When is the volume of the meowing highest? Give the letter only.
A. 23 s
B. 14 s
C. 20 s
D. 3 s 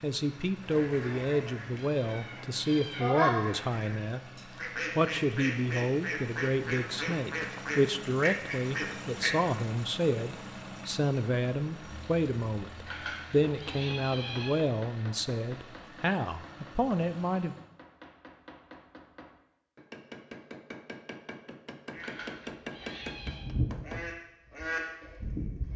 D.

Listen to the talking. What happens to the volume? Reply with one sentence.
The loudness of the talking stays about the same.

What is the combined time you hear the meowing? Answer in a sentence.
The meowing can be heard for 5 seconds in total.